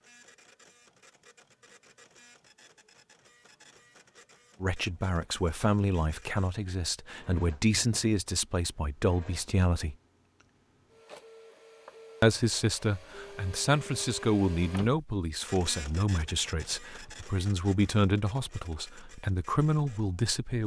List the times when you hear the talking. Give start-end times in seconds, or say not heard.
4.6-9.9, 12.2-20.6.